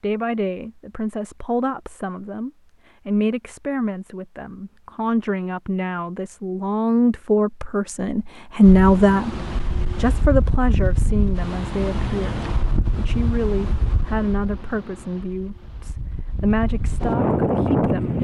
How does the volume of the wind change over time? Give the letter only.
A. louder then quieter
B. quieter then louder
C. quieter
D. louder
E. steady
B.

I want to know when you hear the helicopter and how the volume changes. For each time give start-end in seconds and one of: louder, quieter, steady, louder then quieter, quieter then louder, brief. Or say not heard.
not heard.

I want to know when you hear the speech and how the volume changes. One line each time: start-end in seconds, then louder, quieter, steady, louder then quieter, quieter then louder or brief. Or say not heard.
0.0-18.2 louder then quieter.